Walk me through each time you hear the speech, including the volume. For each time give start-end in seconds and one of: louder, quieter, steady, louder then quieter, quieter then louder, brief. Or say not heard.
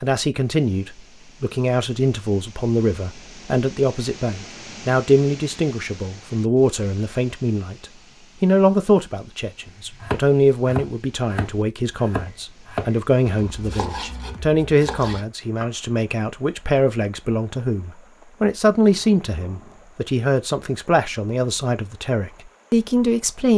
0.0-23.5 steady.